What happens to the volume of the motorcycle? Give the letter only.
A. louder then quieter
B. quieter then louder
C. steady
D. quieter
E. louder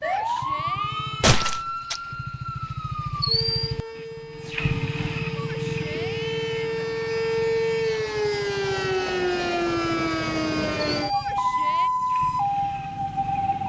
A.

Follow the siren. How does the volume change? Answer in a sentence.
The volume of the siren goes down, then up.